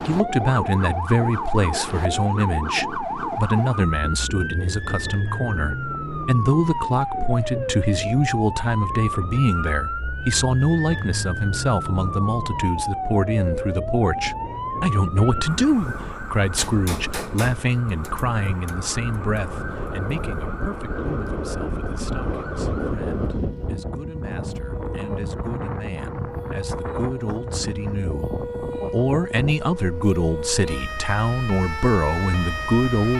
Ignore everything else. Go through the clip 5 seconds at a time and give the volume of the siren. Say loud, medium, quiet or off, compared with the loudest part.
loud, loud, loud, medium, medium, medium, loud.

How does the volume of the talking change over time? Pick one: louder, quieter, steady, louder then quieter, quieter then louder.
quieter then louder.